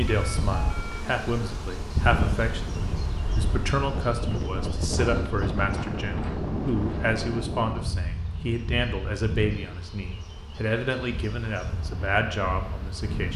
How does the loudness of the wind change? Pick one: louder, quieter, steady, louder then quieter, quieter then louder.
quieter.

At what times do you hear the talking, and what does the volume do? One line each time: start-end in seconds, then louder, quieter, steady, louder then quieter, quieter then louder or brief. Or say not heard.
0.0-13.3 steady.